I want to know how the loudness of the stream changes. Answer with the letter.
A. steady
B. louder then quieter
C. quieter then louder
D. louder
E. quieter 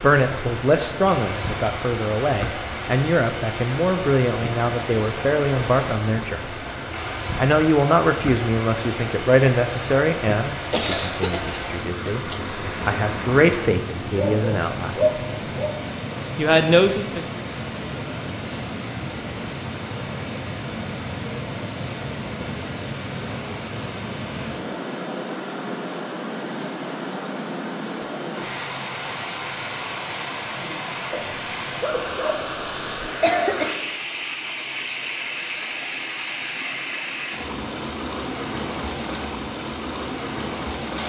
A.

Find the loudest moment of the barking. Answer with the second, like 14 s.
15 s.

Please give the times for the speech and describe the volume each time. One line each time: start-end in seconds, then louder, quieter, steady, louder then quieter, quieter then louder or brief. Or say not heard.
0.0-6.5 steady
7.3-14.9 quieter then louder
16.4-17.2 brief.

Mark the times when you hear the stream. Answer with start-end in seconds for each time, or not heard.
0.0-41.0.